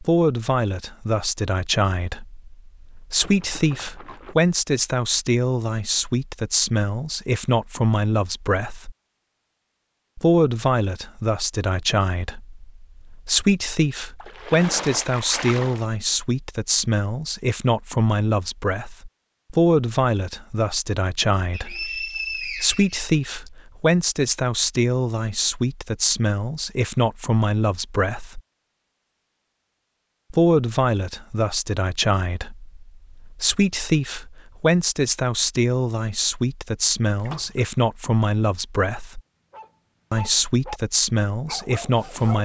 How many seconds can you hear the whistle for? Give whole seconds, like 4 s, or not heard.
2 s.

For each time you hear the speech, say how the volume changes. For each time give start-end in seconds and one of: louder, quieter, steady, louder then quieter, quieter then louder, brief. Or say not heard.
0.0-8.9 steady
10.2-28.4 steady
30.3-39.2 steady
40.1-42.4 brief.